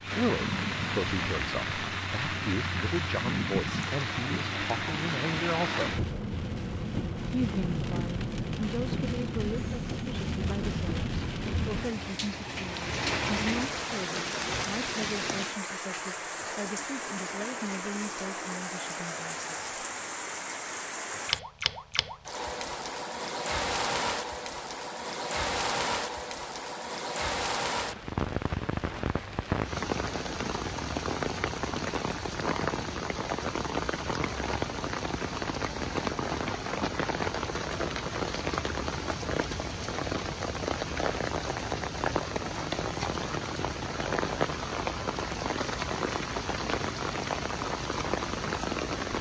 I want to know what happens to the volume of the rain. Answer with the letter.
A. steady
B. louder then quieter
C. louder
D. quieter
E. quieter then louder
A.